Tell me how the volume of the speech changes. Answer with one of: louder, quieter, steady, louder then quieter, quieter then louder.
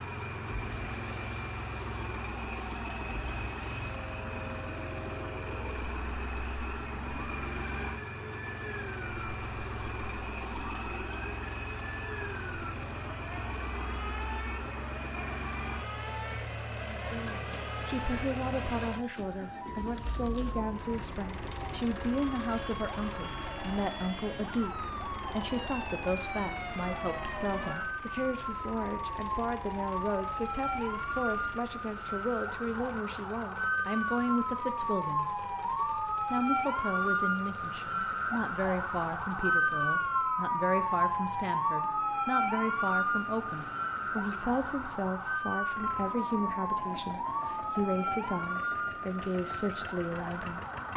steady.